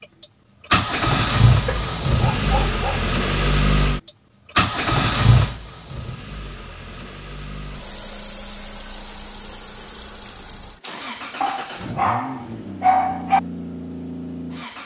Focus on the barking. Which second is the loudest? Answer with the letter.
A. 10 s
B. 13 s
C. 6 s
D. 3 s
B.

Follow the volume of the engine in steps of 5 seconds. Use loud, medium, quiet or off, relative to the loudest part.
loud, medium, quiet.